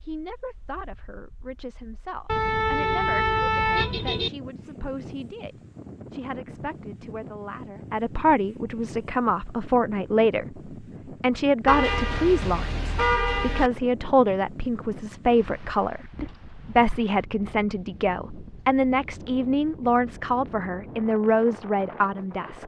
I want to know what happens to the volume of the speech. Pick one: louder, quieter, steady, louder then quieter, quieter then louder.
louder.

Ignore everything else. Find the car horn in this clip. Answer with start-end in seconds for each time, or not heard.
2.2-4.3, 11.7-13.7.